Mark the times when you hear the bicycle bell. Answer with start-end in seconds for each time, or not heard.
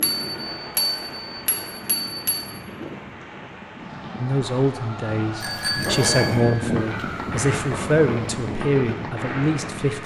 0.0-2.5, 5.4-6.5.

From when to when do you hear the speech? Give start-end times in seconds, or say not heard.
4.2-10.0.